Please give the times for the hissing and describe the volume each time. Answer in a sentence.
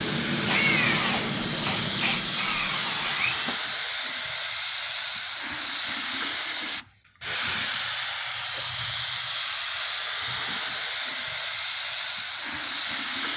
You can hear the hissing from 0.0 to 13.3 s, at a steady volume.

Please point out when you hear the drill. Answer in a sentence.
The drill can be heard from 0.0 to 3.5 s.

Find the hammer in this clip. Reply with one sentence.
The hammer can't be heard in this clip.